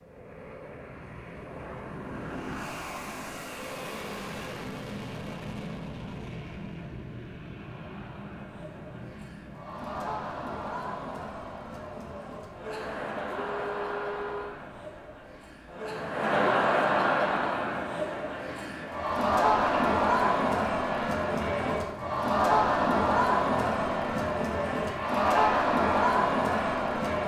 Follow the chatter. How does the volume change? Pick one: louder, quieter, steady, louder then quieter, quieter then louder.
louder.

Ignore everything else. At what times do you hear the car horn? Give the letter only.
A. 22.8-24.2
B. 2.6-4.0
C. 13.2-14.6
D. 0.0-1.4
C.